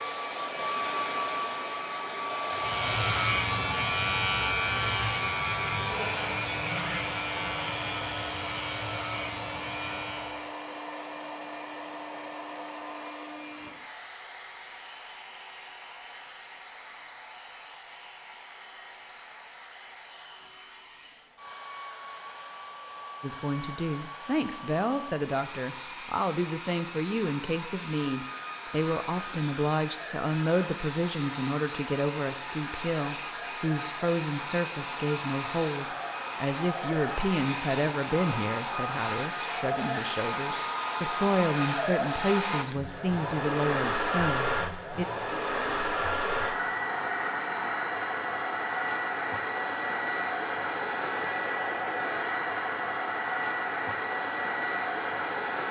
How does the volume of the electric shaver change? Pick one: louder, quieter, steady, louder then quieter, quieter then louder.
quieter.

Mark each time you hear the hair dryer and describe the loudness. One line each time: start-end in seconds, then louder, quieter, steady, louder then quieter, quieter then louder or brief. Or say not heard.
0.0-55.6 quieter then louder.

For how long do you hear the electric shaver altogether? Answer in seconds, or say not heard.
8 s.